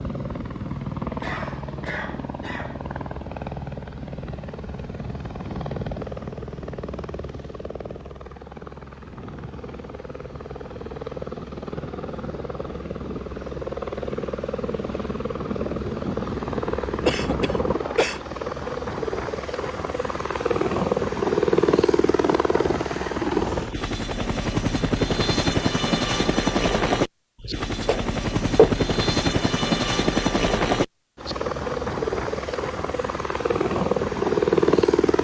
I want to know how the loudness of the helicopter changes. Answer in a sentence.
The loudness of the helicopter goes up.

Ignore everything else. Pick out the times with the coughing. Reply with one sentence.
You can hear the coughing from 1.2 to 2.8 s, from 17.1 to 18.2 s and from 27.8 to 28.8 s.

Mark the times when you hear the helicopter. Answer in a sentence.
The helicopter can be heard from 0.0 to 35.1 s.